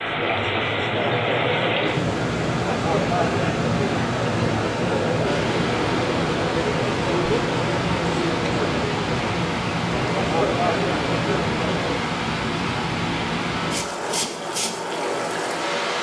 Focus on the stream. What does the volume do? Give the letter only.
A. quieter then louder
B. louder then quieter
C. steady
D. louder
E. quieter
C.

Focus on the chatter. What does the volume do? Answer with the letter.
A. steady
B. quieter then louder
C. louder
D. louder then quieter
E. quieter
A.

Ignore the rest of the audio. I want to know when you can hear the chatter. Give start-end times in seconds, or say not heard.
0.0-12.2.